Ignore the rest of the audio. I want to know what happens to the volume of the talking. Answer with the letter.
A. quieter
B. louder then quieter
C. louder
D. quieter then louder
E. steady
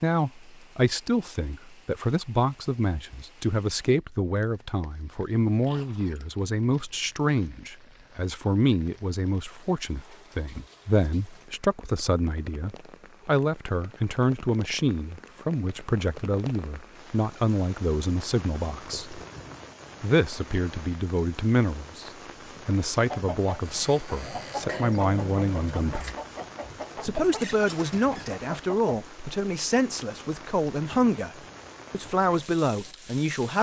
E.